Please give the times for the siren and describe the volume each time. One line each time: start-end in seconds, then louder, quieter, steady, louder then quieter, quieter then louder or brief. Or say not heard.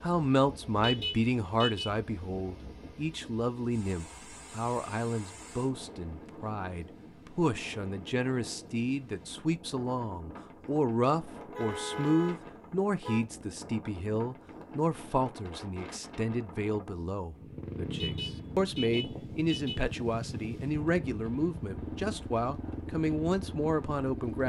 not heard.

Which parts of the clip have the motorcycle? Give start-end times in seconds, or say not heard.
17.2-24.4.